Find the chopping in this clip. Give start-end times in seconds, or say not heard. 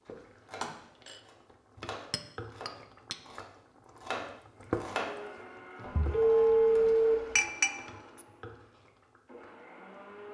0.5-6.8.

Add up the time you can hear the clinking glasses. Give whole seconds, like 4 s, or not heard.
2 s.